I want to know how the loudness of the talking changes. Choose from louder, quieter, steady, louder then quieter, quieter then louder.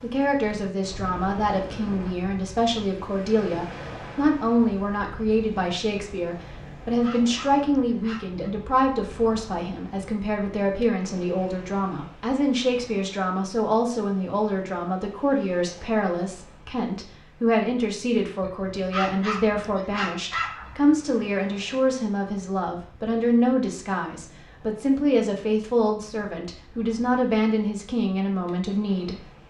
steady.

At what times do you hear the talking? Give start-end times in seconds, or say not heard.
0.0-29.1.